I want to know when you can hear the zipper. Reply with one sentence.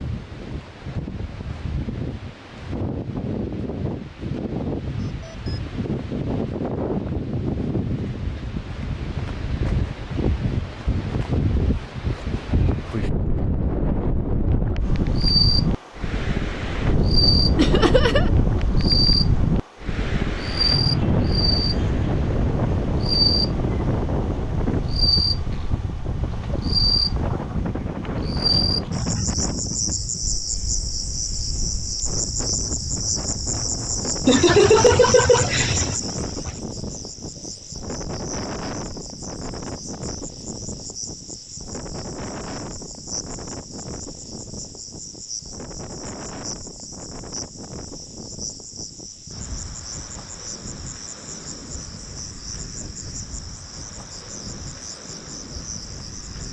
The zipper can't be heard in this clip.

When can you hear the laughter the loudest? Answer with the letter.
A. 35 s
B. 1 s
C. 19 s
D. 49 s
A.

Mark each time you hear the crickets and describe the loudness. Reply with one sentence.
The crickets can be heard from 14.8 to 56.4 s, getting quieter.